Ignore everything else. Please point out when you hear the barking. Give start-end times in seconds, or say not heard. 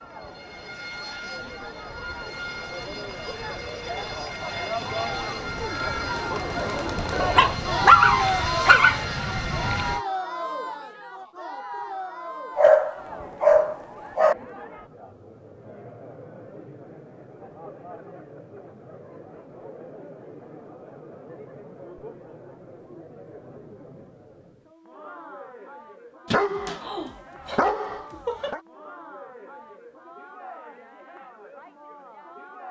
7.3-8.9, 12.6-14.3, 26.3-28.6.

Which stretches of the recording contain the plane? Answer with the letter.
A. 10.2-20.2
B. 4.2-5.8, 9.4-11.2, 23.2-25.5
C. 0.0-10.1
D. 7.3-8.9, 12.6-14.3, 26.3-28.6
C.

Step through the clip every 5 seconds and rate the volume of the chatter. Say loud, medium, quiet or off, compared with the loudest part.
medium, loud, medium, quiet, quiet, quiet, quiet.